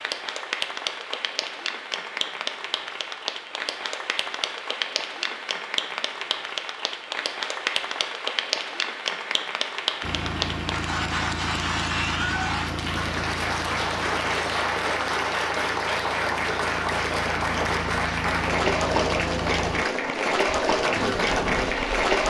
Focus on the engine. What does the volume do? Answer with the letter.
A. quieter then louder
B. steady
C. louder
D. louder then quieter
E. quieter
A.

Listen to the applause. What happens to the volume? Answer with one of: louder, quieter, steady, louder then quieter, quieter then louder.
louder.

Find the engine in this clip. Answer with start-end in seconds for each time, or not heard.
10.0-21.9.